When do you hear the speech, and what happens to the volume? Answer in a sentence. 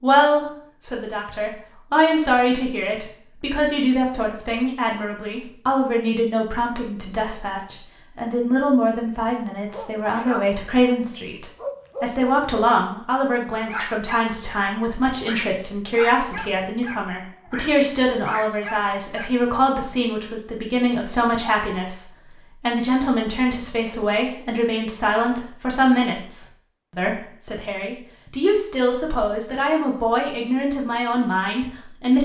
The speech can be heard from 0.0 to 32.1 s, at a steady volume.